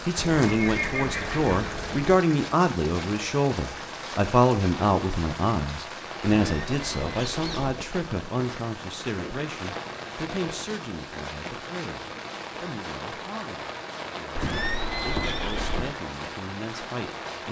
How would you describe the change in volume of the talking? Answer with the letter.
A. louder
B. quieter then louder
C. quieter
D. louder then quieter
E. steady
C.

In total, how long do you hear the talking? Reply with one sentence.
The talking can be heard for 17 seconds in total.